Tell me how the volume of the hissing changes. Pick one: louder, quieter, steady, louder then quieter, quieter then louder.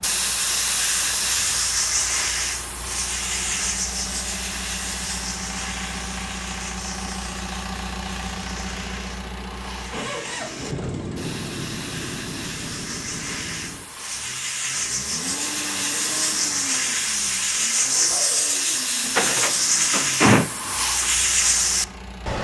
quieter then louder.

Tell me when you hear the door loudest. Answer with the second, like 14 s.
20 s.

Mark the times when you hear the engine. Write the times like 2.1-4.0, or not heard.
0.0-22.3.